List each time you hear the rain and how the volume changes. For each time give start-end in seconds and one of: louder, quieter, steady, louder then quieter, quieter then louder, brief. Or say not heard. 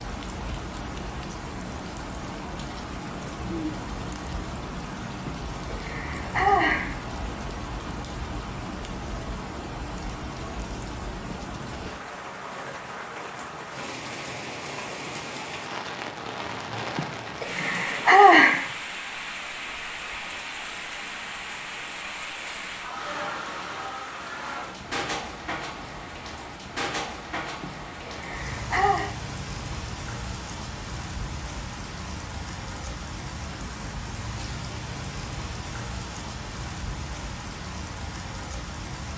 0.0-39.1 steady.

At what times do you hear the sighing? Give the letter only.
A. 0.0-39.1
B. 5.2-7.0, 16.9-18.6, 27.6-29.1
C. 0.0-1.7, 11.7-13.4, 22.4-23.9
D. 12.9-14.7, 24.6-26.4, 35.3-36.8
B.